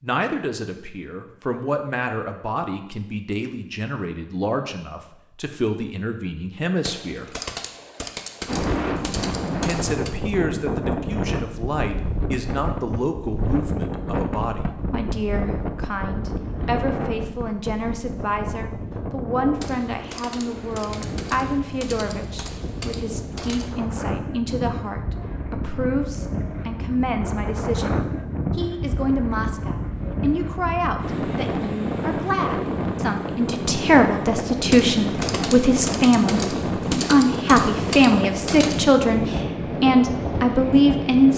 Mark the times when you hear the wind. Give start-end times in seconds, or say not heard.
8.4-41.3.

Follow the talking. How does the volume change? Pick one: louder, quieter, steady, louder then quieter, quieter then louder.
louder.